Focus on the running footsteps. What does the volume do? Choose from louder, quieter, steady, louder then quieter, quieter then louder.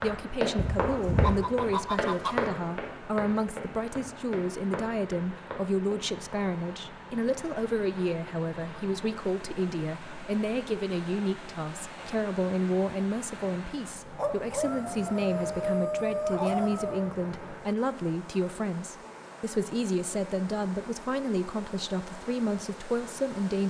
quieter.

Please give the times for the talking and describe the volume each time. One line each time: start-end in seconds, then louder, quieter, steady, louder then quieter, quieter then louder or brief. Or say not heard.
0.0-23.6 steady.